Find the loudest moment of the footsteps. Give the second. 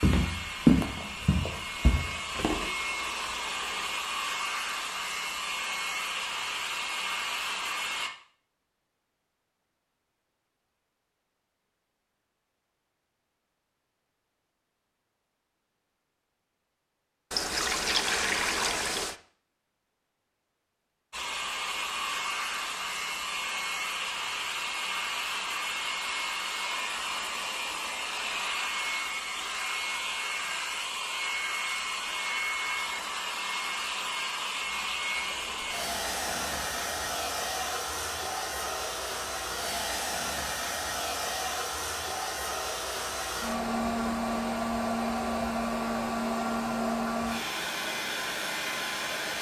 1 s.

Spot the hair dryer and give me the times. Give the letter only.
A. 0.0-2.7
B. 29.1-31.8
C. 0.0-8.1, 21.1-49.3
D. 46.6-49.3
C.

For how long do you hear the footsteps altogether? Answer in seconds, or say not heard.
3 s.